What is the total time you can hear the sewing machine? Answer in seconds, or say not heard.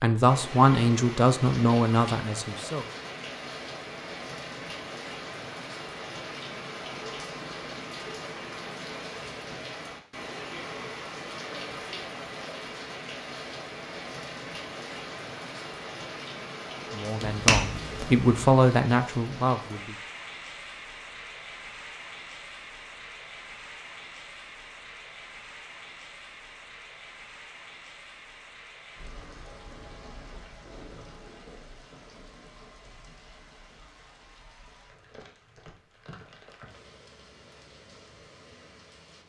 not heard.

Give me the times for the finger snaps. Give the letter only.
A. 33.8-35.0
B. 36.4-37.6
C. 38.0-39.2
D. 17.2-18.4
D.